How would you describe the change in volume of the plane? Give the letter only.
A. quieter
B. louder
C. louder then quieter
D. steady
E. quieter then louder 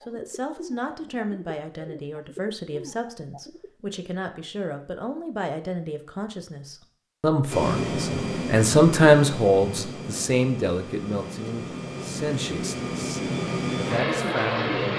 E.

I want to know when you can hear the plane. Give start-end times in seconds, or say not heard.
7.5-14.9.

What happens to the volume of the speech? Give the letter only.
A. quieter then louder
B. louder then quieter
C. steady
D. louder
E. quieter
B.